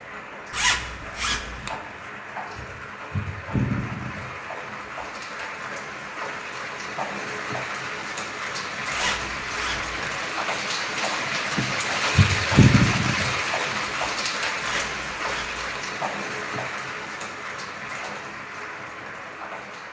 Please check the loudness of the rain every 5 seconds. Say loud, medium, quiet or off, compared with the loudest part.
medium, medium, loud, medium.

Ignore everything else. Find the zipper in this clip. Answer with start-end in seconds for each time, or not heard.
0.5-1.8, 8.9-10.2, 14.6-15.7.